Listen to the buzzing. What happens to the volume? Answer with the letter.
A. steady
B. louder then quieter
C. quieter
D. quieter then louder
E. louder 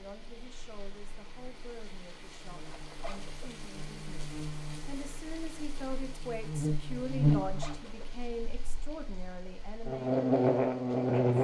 E.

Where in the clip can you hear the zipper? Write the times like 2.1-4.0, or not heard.
2.6-3.5, 7.4-8.2.